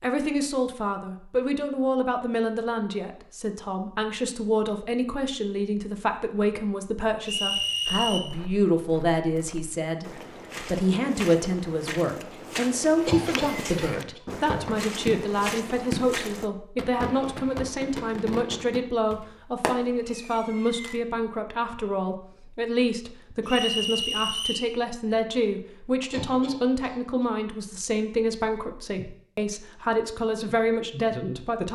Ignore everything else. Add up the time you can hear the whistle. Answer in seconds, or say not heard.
2 s.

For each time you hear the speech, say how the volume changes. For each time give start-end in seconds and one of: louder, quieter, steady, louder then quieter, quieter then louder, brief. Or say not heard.
0.0-31.7 steady.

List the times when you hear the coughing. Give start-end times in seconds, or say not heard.
13.1-14.2, 26.1-27.2.